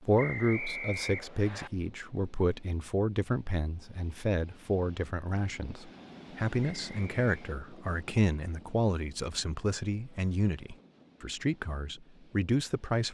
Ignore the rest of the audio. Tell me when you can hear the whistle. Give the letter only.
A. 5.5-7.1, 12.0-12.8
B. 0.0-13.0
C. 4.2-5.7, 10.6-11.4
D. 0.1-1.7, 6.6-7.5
D.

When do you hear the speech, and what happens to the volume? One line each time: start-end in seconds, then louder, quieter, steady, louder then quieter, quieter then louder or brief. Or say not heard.
0.0-13.0 steady.